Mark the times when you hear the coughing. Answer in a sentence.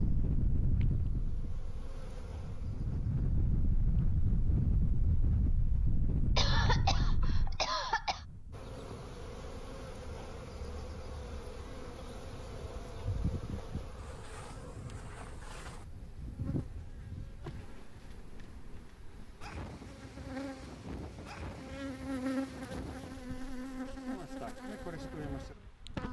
The coughing can be heard from 6.3 to 8.2 s.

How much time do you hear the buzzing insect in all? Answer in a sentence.
The buzzing insect can be heard for 24 seconds in total.